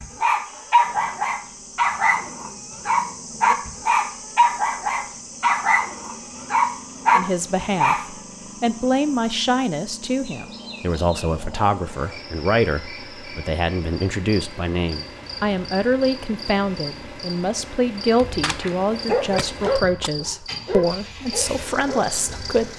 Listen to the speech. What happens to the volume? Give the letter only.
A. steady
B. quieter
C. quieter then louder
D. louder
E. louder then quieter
A.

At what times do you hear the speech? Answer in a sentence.
You can hear the speech from 7.2 to 22.7 s.